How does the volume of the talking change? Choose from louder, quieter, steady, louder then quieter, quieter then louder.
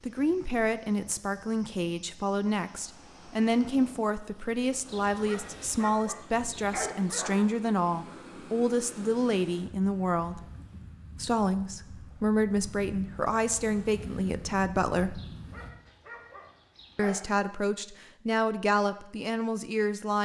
steady.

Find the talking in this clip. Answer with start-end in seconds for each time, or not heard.
0.0-10.4, 11.2-15.2, 16.9-20.1.